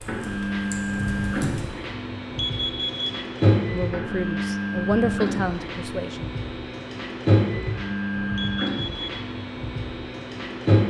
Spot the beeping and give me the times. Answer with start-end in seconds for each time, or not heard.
2.4-3.2, 8.3-9.2.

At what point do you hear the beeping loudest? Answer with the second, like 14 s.
3 s.